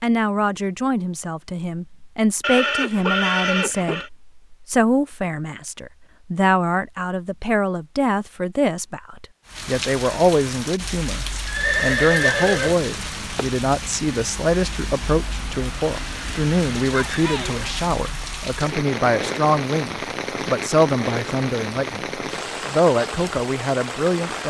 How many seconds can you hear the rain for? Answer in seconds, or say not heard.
15 s.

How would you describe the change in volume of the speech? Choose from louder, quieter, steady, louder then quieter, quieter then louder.
steady.